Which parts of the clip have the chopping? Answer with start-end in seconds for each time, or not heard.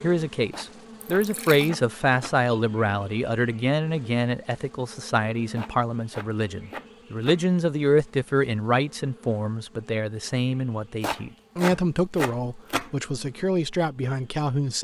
0.5-2.4, 5.5-7.5, 11.0-12.9.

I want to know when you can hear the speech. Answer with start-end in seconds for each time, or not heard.
0.0-14.7.